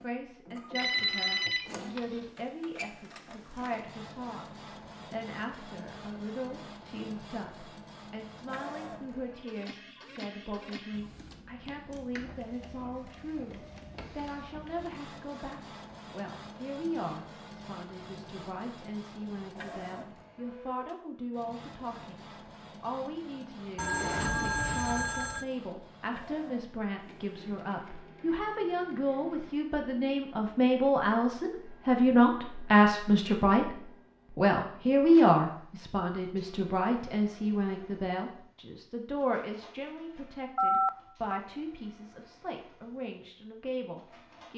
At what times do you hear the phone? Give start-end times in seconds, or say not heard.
0.8-2.2, 23.8-25.4, 40.5-41.4.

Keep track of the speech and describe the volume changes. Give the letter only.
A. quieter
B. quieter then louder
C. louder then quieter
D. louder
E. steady
C.